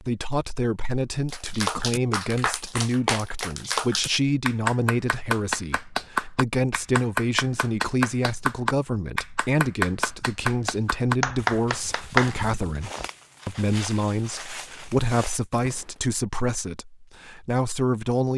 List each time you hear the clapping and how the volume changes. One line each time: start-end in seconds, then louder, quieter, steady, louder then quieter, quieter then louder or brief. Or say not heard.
1.2-13.1 steady.